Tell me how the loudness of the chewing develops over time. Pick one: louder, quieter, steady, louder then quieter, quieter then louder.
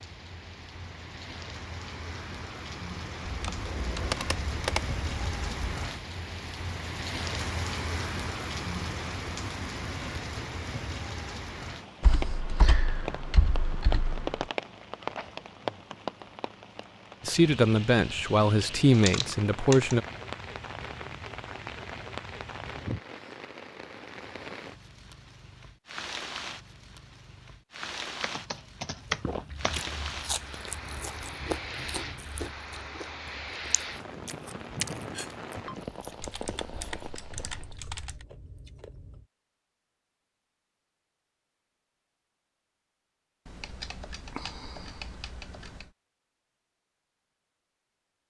quieter.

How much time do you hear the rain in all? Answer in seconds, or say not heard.
38 s.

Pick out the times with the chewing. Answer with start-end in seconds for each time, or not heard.
29.0-39.2.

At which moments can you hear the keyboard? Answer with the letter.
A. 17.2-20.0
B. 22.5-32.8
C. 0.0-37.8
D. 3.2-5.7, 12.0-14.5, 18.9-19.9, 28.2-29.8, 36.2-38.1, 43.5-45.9
D.